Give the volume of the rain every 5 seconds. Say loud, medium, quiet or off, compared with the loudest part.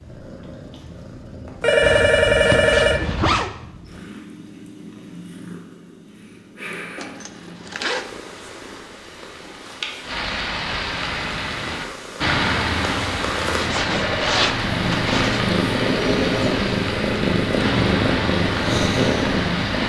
off, quiet, loud, loud.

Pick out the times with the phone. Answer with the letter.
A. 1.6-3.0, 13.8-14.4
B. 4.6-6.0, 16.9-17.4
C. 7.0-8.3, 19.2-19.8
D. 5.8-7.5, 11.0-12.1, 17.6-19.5
A.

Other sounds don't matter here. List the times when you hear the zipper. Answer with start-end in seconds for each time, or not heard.
1.8-3.5, 7.0-8.1, 13.6-15.4.